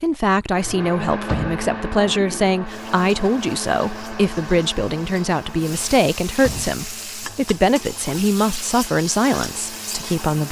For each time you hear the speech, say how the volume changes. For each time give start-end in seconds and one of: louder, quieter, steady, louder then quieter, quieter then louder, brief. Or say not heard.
0.0-10.4 steady.